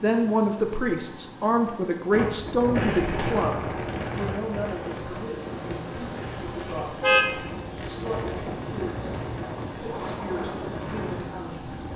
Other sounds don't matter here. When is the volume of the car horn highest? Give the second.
7 s.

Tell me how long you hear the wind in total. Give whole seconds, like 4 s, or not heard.
10 s.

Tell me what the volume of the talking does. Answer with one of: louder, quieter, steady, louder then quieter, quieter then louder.
quieter.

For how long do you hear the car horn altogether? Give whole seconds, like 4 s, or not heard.
2 s.